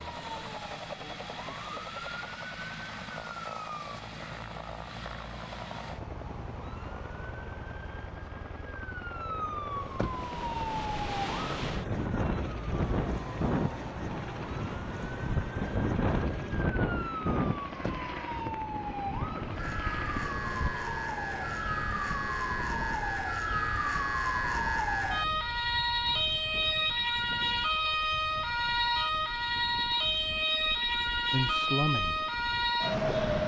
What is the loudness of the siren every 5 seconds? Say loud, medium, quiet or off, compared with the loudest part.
quiet, quiet, medium, medium, loud, loud, loud.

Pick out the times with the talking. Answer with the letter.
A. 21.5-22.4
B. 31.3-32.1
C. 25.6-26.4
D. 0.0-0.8
B.